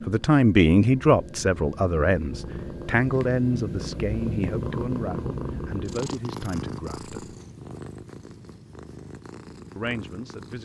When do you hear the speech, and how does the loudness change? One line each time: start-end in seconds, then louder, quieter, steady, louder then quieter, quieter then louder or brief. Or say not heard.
0.1-7.3 quieter
9.8-10.6 brief.